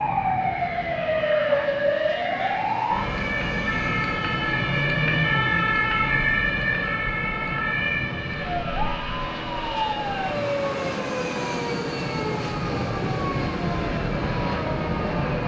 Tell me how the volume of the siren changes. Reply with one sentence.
The loudness of the siren goes down.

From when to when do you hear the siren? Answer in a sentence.
The siren can be heard from 0.0 to 15.4 s.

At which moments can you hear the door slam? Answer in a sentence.
You can't hear the door slam here.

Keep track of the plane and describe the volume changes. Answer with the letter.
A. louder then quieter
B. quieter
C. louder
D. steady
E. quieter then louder
C.